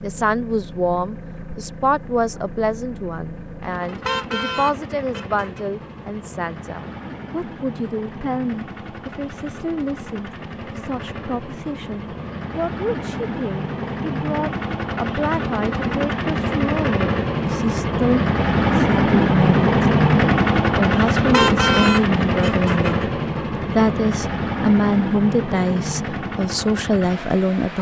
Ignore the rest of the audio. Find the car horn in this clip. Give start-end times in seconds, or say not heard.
3.9-5.7, 21.1-23.1.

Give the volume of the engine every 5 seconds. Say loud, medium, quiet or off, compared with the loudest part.
quiet, quiet, medium, loud, loud, medium.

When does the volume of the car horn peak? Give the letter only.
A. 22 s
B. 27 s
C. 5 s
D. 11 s
A.